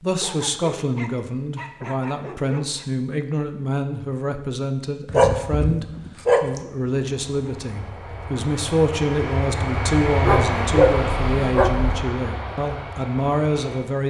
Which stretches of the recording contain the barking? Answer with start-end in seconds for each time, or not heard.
0.2-2.9, 5.0-6.6, 10.2-11.9.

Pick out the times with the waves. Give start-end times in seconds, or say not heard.
not heard.